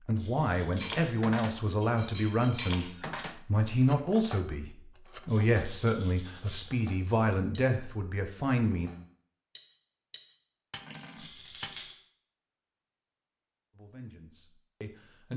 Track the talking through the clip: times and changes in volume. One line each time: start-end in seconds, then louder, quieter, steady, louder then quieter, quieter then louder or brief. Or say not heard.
0.1-8.9 steady
13.7-15.3 brief.